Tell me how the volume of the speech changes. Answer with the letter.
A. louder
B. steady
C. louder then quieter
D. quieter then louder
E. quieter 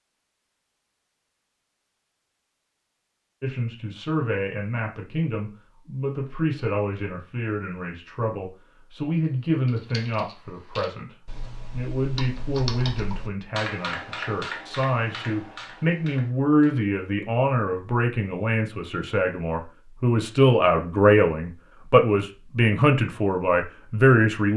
A.